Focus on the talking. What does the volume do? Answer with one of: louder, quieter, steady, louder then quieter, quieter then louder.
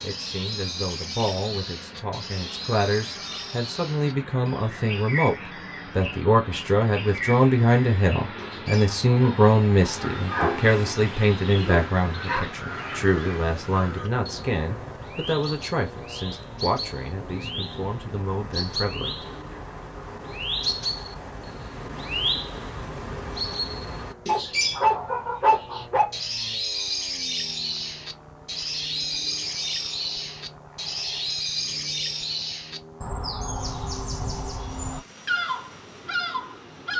louder then quieter.